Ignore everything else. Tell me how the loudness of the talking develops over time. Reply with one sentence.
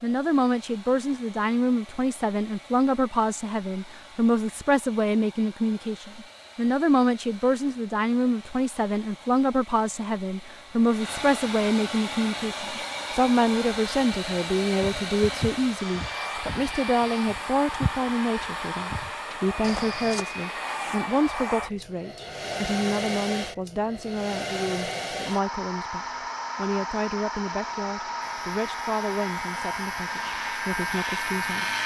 The loudness of the talking goes down.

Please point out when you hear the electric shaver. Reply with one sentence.
You can hear the electric shaver from 28.2 to 31.8 s.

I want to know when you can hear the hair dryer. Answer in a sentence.
You can hear the hair dryer from 0.0 to 31.8 s.